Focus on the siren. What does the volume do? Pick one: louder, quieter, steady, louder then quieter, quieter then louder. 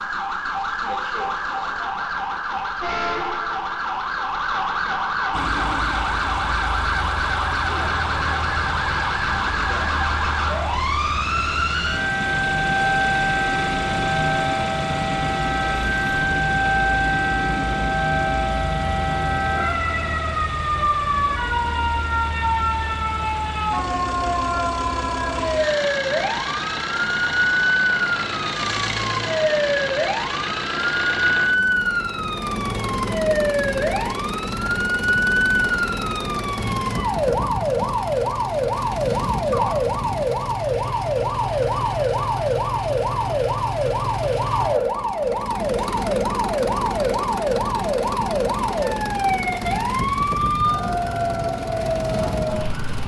steady.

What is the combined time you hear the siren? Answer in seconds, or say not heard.
53 s.